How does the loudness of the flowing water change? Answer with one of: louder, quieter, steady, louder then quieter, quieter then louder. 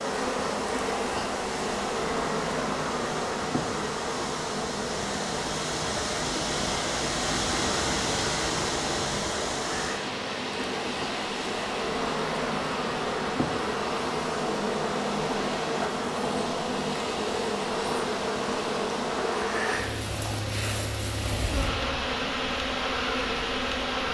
louder then quieter.